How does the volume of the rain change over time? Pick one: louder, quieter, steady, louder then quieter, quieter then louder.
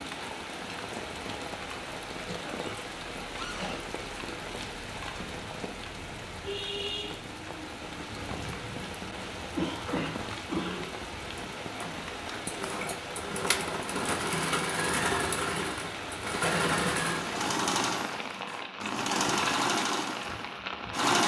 steady.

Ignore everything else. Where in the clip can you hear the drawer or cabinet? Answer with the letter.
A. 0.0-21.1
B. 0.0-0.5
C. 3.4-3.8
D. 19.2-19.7
C.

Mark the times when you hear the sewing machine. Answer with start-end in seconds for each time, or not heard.
11.8-21.2.